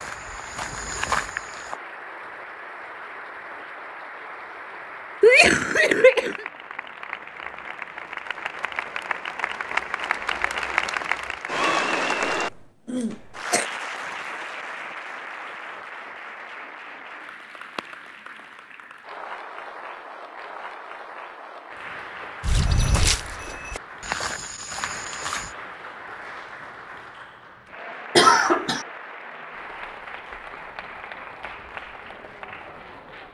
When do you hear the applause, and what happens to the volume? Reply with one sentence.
You can hear the applause from 0.0 to 33.2 s, getting louder then quieter.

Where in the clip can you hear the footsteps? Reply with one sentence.
The footsteps can be heard from 0.0 to 1.8 s and from 22.4 to 25.6 s.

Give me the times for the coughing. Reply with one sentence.
The coughing can be heard from 5.2 to 6.5 s, from 12.4 to 13.7 s and from 28.1 to 28.9 s.